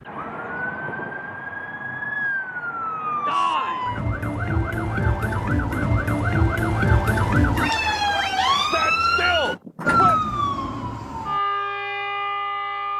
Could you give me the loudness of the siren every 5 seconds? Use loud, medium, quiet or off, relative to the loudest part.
medium, loud, loud.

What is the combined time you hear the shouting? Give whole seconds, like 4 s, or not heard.
2 s.